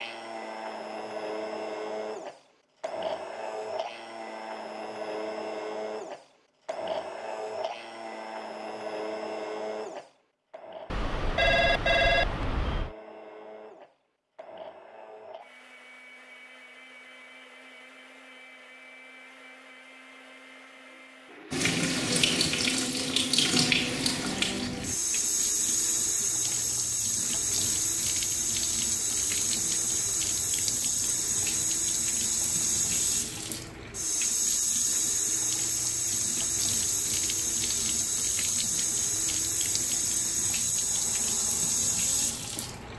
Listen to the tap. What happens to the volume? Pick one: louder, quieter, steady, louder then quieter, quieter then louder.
steady.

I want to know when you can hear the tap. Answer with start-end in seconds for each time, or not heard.
21.5-42.9.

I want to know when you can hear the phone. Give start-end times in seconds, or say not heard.
10.9-12.9.